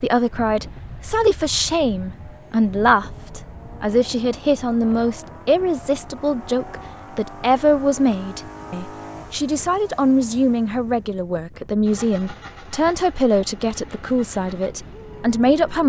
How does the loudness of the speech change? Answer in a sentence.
The loudness of the speech stays about the same.